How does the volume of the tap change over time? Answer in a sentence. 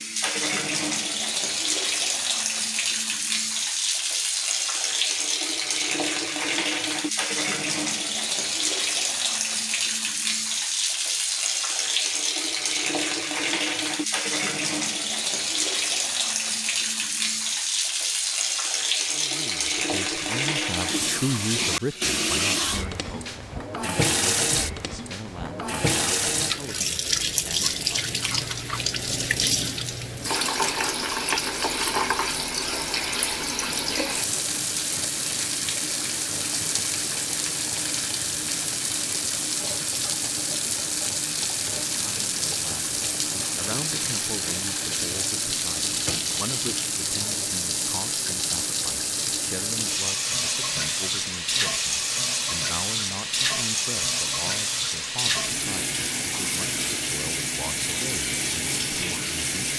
The loudness of the tap stays about the same.